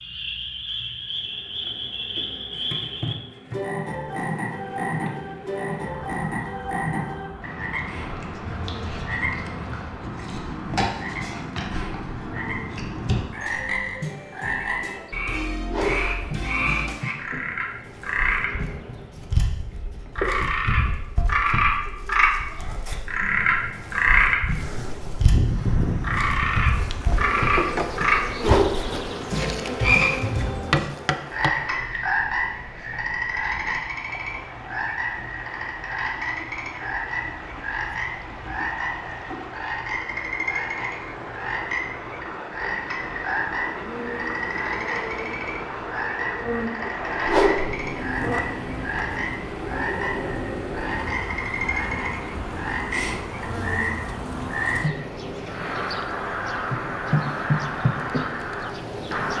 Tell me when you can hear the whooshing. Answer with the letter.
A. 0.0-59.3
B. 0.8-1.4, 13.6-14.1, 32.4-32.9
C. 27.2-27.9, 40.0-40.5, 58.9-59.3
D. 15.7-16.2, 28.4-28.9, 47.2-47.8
D.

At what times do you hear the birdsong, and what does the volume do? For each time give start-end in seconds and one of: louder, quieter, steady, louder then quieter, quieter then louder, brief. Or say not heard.
not heard.